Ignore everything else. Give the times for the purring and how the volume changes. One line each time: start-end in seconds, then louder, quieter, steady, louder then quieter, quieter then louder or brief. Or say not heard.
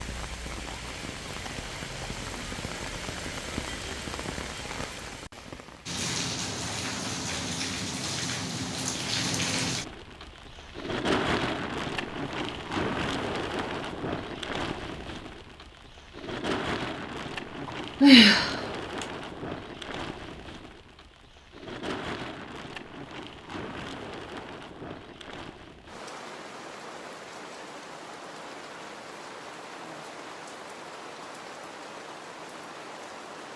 not heard.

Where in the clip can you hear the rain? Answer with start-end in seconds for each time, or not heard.
0.0-33.5.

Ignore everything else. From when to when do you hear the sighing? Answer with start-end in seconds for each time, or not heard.
18.0-19.1.